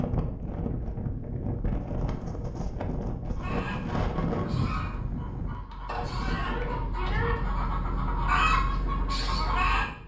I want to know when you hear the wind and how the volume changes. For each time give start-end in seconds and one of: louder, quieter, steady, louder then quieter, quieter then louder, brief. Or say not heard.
0.0-10.0 quieter.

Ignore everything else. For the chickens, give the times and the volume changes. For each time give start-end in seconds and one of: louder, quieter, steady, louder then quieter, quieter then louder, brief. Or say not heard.
3.4-9.8 louder.